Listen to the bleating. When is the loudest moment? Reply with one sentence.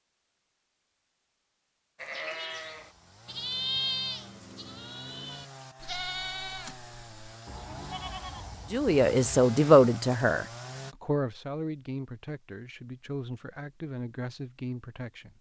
The loudest moment of the bleating is at 4 seconds.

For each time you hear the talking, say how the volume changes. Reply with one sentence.
The talking can be heard from 8.7 to 15.3 s, getting quieter.